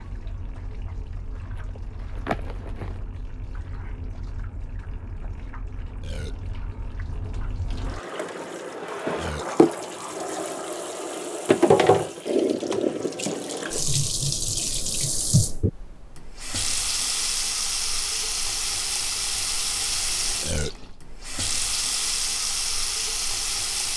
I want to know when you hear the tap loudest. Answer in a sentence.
The volume of the tap peaks at 12 seconds.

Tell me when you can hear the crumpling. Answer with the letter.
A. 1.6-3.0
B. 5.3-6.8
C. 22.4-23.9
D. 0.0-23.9
A.